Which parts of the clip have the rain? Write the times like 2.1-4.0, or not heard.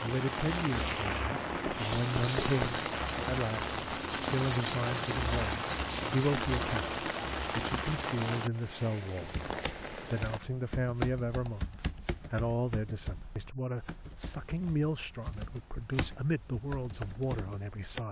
0.0-10.4.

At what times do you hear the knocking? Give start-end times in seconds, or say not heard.
1.6-2.8.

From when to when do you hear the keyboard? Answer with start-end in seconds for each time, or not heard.
9.2-18.0.